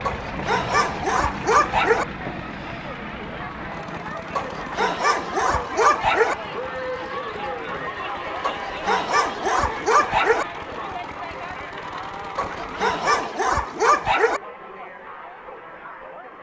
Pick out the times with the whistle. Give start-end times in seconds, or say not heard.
not heard.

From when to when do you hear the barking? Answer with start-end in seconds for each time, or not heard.
0.1-2.0, 4.3-6.3, 8.4-10.4, 12.3-14.4.